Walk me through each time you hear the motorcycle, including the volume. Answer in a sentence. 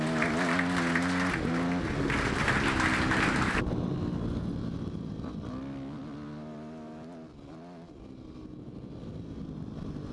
You can hear the motorcycle from 0.0 to 10.0 s, getting quieter.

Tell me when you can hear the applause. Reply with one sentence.
You can hear the applause from 0.0 to 3.6 s.